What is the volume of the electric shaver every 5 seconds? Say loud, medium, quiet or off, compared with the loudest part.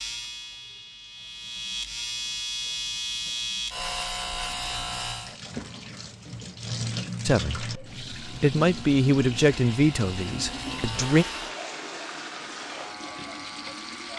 loud, medium, medium.